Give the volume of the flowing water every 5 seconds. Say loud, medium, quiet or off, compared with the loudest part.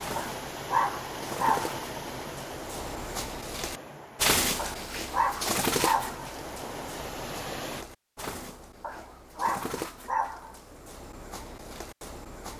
loud, loud, off.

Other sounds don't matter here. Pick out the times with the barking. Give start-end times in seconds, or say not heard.
0.1-1.8, 4.5-6.3, 8.8-10.6.